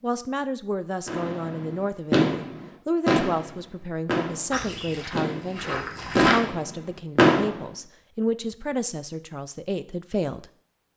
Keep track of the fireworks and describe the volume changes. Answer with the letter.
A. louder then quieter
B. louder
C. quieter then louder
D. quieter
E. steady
C.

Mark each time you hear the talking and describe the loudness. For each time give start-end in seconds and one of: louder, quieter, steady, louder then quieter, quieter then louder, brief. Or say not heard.
0.0-10.5 steady.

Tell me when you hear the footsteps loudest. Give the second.
6 s.